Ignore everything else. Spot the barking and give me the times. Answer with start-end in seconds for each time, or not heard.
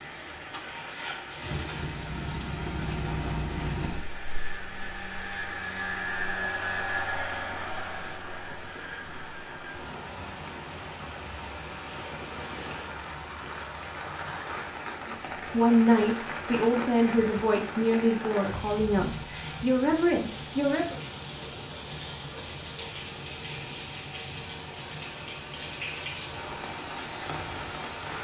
not heard.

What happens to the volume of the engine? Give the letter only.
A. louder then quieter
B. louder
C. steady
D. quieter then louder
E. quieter
E.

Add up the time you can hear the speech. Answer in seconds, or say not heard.
6 s.